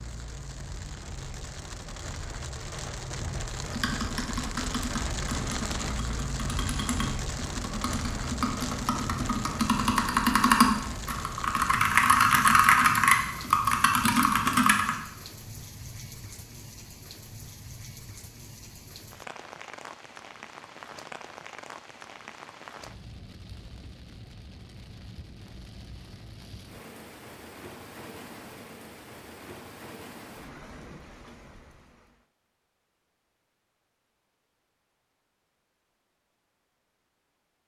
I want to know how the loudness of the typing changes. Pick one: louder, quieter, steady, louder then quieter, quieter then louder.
louder.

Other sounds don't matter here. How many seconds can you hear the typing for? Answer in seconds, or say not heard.
11 s.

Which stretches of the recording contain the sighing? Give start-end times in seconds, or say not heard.
not heard.